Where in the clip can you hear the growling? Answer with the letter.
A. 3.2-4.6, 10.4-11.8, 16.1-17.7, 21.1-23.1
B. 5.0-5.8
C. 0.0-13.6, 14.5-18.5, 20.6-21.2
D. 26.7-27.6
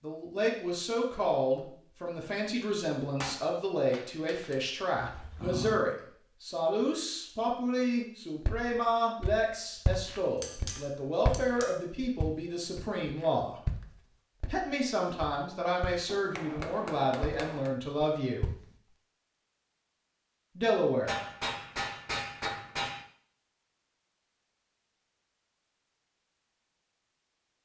B.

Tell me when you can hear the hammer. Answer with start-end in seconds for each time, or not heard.
3.2-4.6, 10.4-11.8, 16.1-17.7, 21.1-23.1.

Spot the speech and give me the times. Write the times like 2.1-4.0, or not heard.
0.0-13.6, 14.5-18.5, 20.6-21.2.